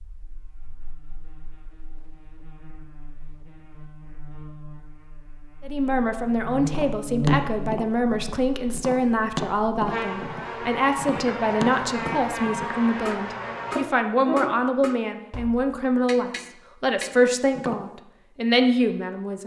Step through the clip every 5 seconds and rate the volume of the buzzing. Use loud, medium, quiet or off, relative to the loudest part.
quiet, loud, loud, off.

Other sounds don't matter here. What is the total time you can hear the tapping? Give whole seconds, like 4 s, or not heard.
11 s.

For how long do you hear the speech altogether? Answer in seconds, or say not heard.
14 s.